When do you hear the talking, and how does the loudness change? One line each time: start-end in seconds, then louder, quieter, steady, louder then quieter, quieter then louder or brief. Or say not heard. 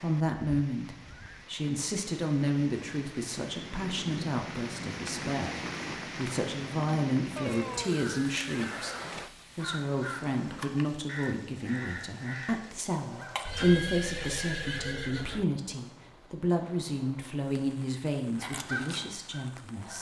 0.0-19.9 steady.